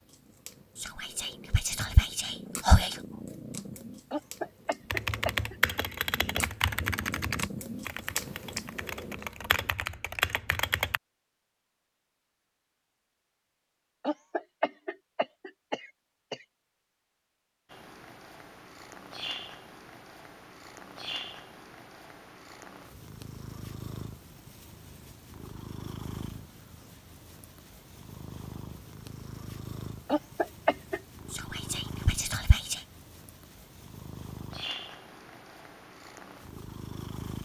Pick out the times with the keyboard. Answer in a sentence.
You can hear the keyboard from 4.9 to 11.0 s.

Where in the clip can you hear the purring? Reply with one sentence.
You can hear the purring from 0.0 to 9.8 s and from 17.7 to 37.4 s.